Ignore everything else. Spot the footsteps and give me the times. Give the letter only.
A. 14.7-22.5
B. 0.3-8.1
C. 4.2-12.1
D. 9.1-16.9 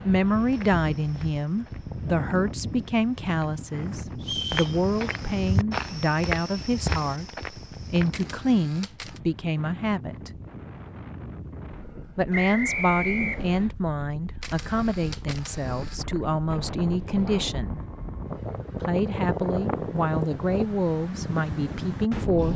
B.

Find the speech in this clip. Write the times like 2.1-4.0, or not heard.
0.0-10.3, 12.2-17.8, 18.8-22.5.